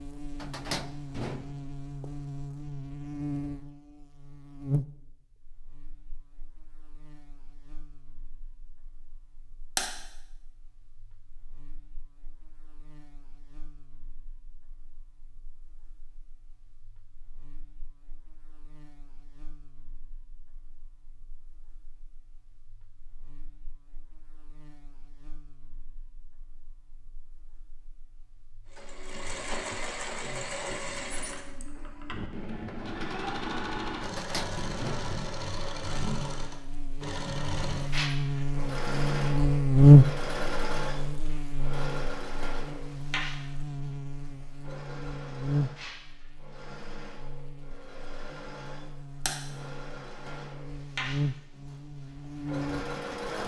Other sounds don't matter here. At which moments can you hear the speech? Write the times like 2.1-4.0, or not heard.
not heard.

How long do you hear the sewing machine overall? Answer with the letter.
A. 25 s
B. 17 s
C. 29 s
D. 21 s
A.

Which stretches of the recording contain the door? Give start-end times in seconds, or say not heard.
0.3-2.1, 34.0-35.7.